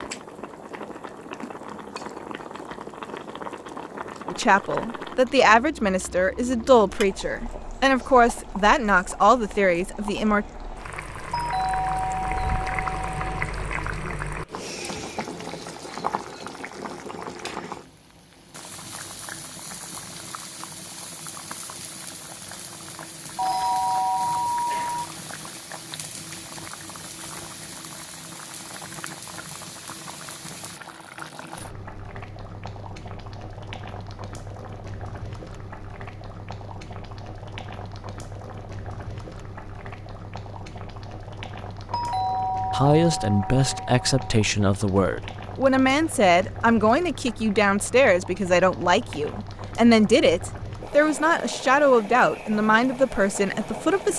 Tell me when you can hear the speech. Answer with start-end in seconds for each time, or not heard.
4.3-10.4, 42.7-54.1.